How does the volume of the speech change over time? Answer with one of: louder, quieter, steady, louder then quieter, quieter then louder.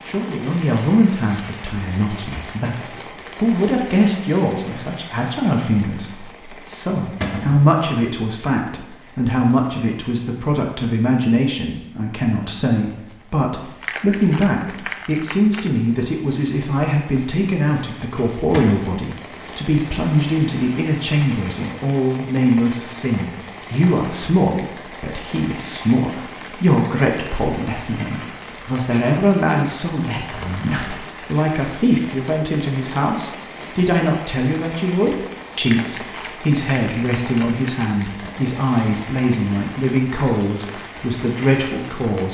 steady.